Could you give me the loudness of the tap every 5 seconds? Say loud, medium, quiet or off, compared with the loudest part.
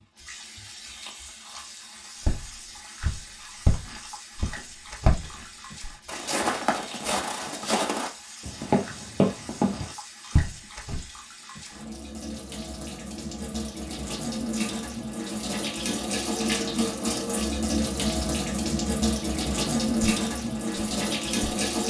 quiet, quiet, medium, loud, loud.